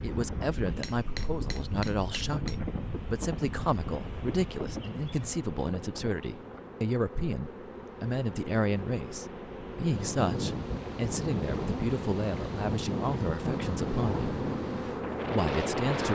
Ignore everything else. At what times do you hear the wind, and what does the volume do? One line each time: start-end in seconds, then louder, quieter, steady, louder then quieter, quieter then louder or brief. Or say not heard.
0.0-16.1 quieter then louder.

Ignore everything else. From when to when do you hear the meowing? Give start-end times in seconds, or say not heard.
not heard.